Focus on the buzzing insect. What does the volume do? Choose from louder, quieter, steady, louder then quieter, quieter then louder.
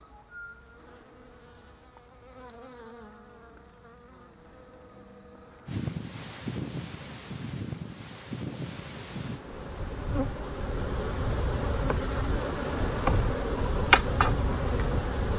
louder.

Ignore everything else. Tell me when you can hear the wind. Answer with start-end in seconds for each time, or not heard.
5.7-15.3.